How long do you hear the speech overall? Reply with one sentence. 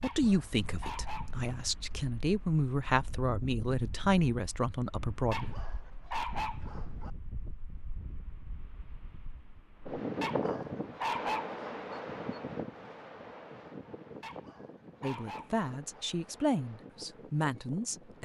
The speech can be heard for 9 seconds in total.